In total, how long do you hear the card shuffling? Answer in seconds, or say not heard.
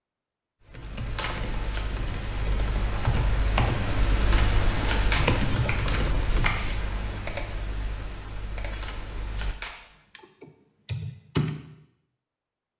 4 s.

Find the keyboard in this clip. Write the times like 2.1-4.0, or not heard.
0.7-11.6.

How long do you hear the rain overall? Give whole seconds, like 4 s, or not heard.
not heard.